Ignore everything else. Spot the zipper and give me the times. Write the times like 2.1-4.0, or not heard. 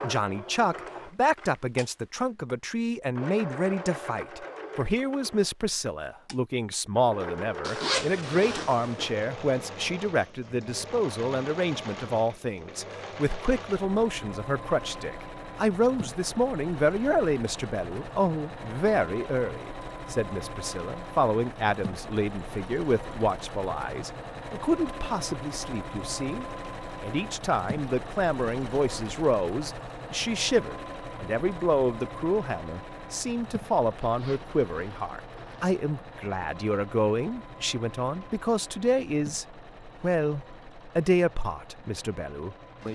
7.6-9.1, 34.0-35.7.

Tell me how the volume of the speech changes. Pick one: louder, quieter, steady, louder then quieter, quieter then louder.
steady.